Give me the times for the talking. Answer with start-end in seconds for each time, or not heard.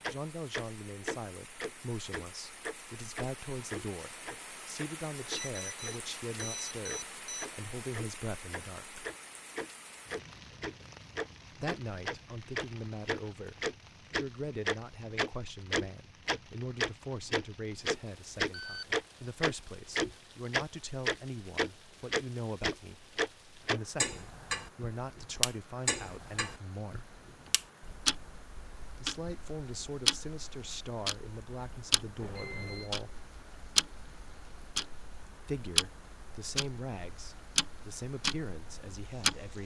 0.1-9.1, 11.5-27.1, 28.9-33.2, 35.5-39.6.